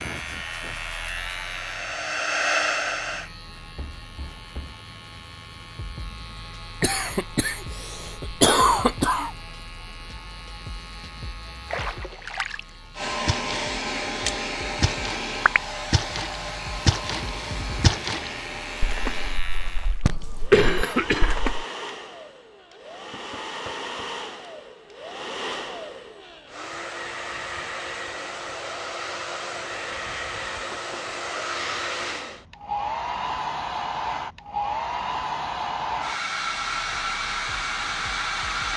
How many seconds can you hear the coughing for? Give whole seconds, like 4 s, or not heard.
4 s.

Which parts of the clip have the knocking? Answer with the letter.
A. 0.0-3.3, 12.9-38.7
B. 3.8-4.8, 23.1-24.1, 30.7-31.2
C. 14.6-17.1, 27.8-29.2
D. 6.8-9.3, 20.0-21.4
B.